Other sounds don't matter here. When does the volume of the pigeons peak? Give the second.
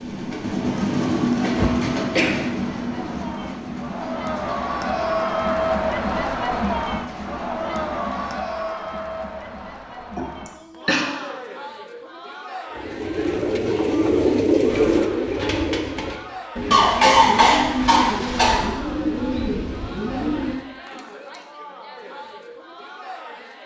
15 s.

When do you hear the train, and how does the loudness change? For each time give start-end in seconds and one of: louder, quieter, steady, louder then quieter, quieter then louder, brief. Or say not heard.
0.0-8.4 quieter.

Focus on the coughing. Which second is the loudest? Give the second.
17 s.